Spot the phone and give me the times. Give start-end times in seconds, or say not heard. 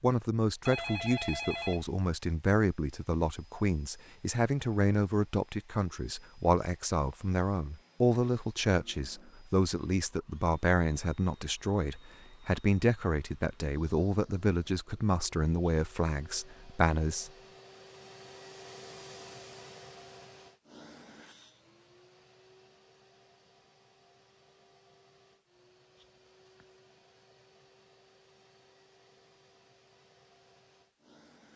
0.7-1.9.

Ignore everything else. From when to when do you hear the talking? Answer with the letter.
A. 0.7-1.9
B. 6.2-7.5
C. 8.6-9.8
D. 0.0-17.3
D.